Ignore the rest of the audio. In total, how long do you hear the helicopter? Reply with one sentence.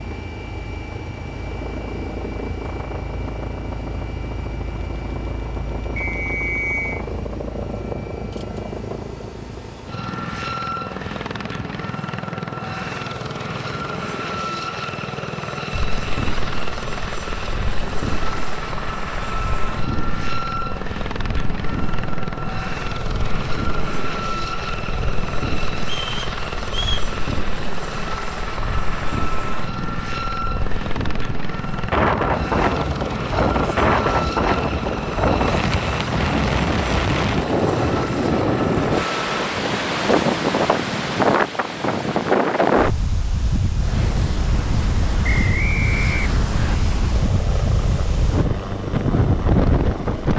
The helicopter can be heard for 48 seconds in total.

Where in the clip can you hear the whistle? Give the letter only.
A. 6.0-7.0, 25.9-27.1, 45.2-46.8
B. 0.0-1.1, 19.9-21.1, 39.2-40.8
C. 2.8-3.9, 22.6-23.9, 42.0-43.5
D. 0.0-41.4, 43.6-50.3
A.